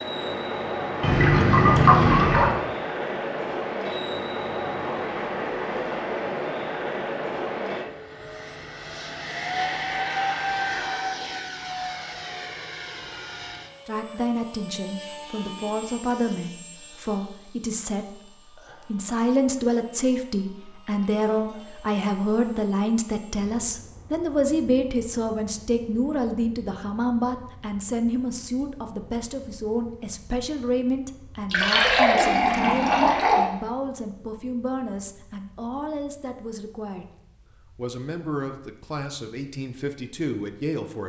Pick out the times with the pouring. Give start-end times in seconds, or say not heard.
1.0-2.5, 31.4-33.5.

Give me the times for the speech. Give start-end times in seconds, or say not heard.
13.8-37.0, 37.8-41.0.